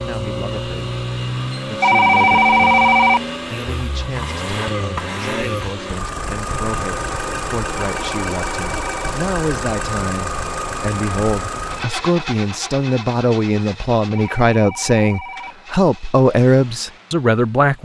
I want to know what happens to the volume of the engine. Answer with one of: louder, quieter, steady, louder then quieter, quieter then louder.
quieter.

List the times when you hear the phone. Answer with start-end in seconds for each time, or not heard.
1.8-3.2, 7.8-9.2, 14.2-15.6.